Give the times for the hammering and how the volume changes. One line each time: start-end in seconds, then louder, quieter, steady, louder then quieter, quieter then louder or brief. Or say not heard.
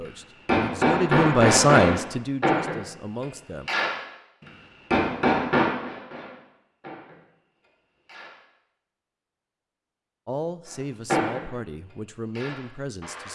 0.0-8.4 quieter
11.1-13.2 brief.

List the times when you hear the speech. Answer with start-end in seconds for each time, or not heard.
0.0-3.7, 10.2-13.2.